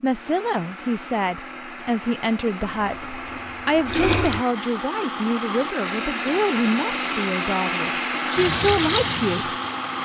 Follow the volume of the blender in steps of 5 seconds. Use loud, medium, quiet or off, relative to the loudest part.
medium, loud.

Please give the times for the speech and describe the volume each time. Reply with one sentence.
You can hear the speech from 0.0 to 9.5 s, at a steady volume.